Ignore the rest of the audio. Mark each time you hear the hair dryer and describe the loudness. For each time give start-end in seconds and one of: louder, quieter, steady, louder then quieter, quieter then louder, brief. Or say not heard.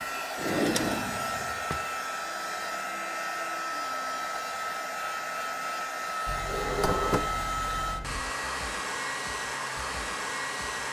0.0-10.8 steady.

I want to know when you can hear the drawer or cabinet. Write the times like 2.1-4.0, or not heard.
0.3-1.8, 6.2-8.2.